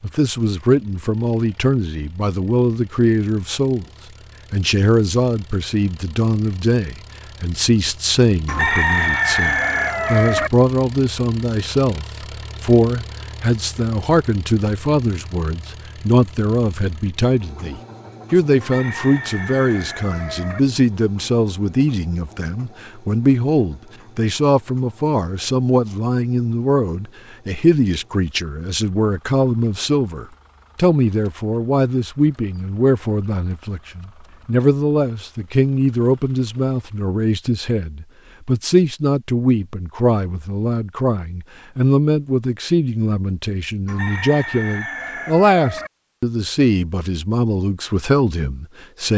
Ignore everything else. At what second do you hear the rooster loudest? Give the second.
9 s.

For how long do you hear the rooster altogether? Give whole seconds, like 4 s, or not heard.
6 s.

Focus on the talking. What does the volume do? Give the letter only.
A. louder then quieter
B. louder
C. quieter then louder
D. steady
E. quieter
D.